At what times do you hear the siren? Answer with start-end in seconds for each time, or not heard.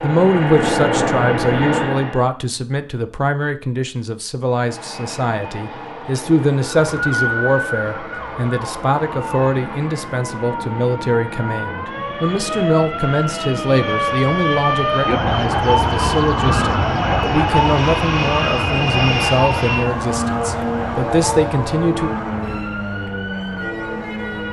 6.8-24.4.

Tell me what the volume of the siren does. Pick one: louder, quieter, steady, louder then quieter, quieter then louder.
louder then quieter.